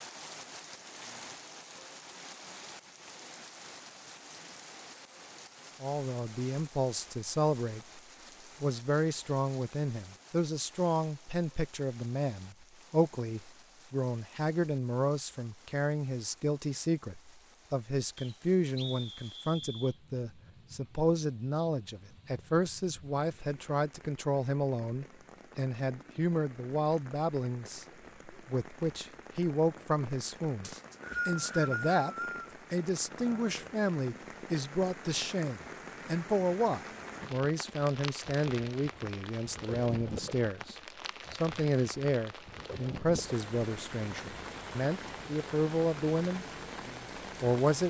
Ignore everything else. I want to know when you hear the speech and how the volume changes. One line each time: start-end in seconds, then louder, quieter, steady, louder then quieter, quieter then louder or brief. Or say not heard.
5.8-8.0 brief
8.6-47.8 steady.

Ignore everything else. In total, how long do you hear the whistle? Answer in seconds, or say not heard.
4 s.